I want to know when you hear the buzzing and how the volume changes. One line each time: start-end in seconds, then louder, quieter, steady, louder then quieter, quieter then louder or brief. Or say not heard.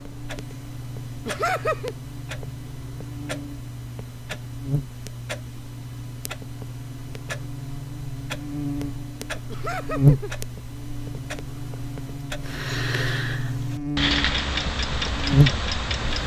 0.0-16.2 louder.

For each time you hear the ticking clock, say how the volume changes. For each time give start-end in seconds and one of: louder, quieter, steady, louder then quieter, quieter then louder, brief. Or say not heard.
0.0-16.2 louder.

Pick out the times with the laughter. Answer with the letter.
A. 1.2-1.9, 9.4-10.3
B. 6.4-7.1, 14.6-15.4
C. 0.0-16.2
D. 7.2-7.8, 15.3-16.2
A.